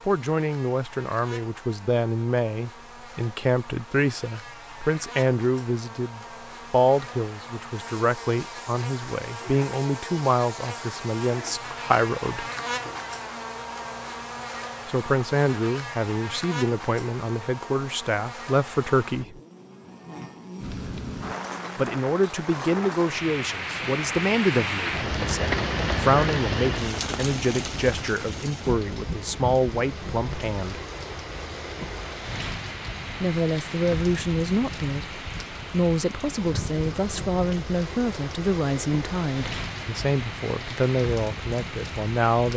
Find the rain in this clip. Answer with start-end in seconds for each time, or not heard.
20.6-42.5.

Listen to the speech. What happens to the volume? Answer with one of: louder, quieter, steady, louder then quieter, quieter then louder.
steady.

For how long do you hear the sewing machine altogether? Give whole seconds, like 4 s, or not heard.
not heard.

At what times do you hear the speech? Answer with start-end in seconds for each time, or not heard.
0.1-12.4, 14.8-19.4, 21.8-30.8, 33.2-42.5.